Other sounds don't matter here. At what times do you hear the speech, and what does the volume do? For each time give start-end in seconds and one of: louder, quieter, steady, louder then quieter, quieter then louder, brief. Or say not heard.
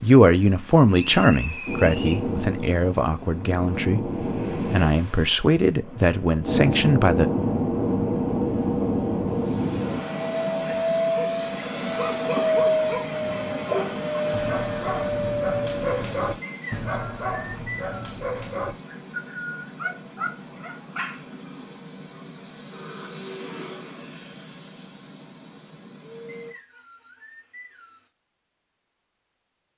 0.0-4.1 quieter
4.7-7.3 brief.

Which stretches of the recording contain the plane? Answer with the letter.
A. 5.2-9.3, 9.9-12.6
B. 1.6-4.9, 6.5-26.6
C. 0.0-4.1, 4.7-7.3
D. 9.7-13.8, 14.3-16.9
B.